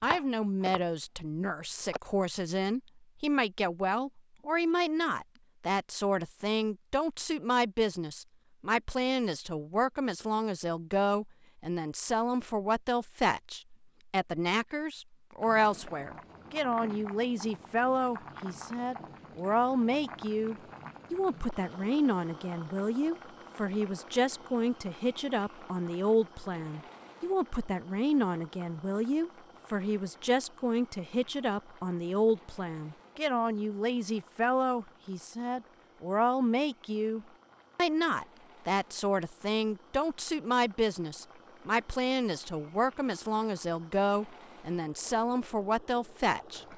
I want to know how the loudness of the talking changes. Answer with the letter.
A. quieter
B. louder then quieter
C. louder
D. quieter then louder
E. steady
E.